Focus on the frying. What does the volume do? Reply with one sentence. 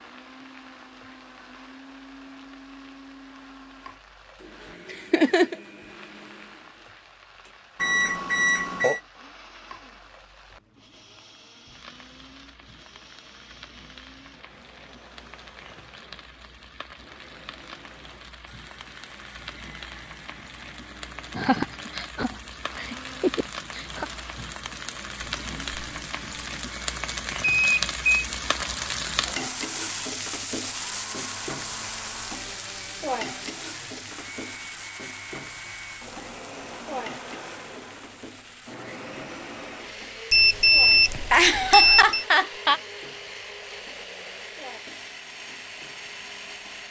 The volume of the frying goes up, then down.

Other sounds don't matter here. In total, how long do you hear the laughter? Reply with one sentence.
You can hear the laughter for 5 seconds altogether.